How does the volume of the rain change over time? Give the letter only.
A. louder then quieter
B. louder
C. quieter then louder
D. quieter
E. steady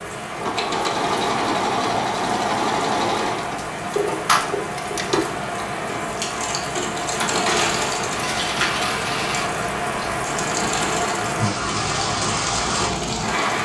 B.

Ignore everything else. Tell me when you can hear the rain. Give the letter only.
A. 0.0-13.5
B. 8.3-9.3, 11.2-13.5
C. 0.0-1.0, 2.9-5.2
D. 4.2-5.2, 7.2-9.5
A.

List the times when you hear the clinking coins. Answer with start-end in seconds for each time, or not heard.
4.2-5.2, 7.2-9.5.